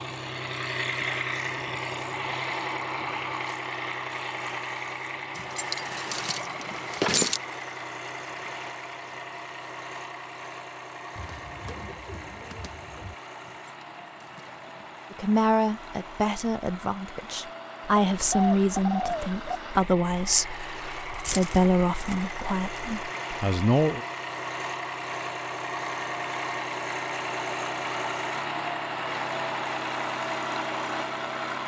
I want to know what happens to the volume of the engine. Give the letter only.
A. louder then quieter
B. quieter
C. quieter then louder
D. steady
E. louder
C.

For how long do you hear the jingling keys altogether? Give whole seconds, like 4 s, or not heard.
5 s.